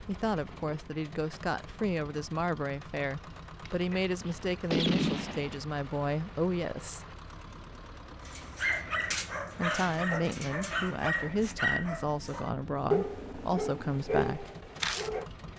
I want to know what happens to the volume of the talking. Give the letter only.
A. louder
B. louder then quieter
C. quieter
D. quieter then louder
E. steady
E.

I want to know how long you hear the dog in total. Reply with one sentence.
You can hear the dog for 7 seconds altogether.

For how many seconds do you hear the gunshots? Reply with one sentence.
You can hear the gunshots for 2 seconds altogether.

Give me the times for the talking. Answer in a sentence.
The talking can be heard from 0.1 to 7.0 s and from 9.6 to 14.5 s.